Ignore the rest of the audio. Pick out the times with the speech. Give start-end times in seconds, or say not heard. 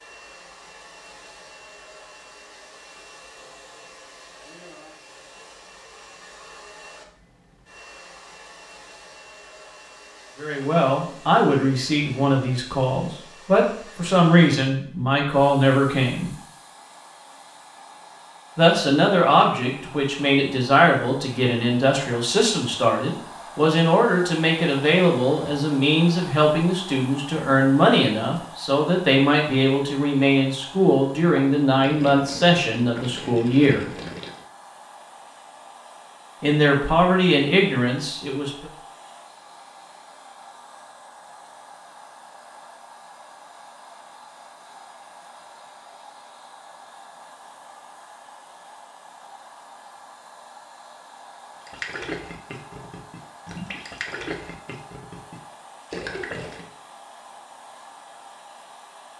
10.3-16.3, 18.6-33.9, 36.4-38.7.